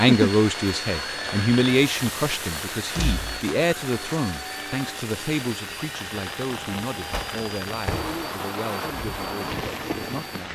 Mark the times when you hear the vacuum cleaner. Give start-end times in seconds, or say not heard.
0.0-10.4.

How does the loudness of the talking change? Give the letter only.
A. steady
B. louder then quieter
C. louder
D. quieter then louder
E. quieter
E.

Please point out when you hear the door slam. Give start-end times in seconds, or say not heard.
3.0-3.5, 7.1-8.2.